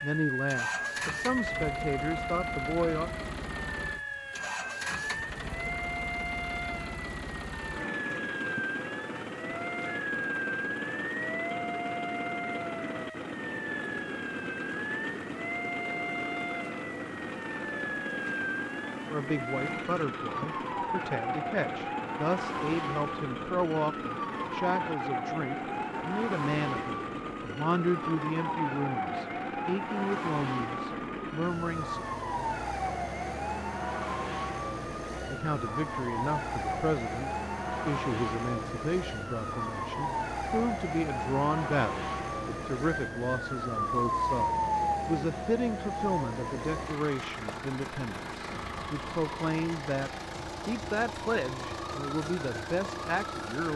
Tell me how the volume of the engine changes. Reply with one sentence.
The volume of the engine stays about the same.